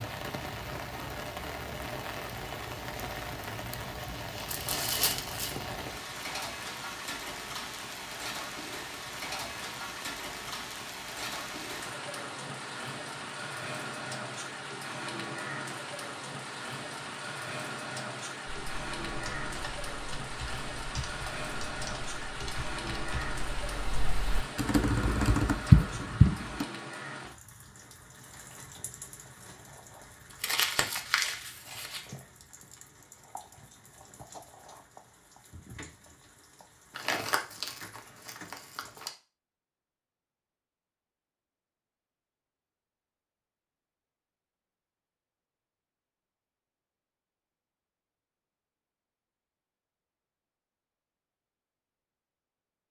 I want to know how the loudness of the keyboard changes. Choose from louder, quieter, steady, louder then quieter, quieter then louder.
louder.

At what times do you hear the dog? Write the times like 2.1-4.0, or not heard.
not heard.